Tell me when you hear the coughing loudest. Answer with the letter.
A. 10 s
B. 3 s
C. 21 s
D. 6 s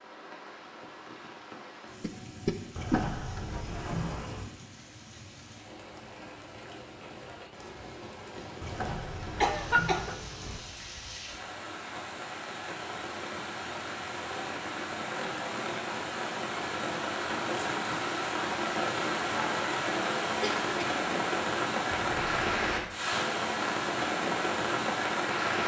A.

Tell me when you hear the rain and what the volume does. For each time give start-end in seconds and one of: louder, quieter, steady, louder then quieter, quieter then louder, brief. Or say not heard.
0.0-25.6 louder.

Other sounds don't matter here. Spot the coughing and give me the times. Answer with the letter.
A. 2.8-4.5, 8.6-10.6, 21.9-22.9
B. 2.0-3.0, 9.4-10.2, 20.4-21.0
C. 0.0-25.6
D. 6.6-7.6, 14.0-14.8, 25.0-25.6
B.